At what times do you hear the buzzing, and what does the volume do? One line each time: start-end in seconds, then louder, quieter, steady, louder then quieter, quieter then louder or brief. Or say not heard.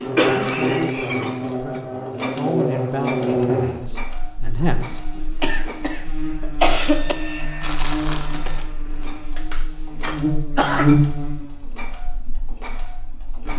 0.0-13.5 quieter then louder.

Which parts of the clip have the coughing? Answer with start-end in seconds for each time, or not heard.
0.1-1.8, 5.2-7.2, 9.3-10.9.